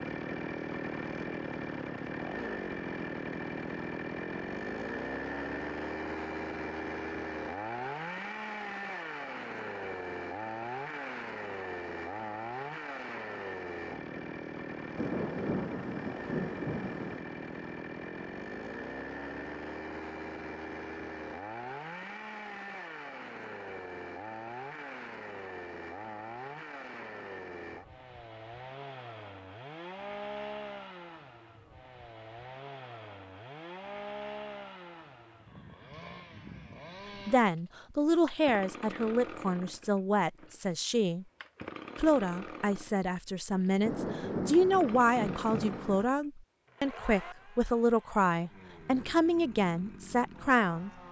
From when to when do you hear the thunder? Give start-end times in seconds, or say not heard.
14.9-17.2, 43.8-46.0.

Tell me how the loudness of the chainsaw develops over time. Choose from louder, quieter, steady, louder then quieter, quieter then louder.
quieter.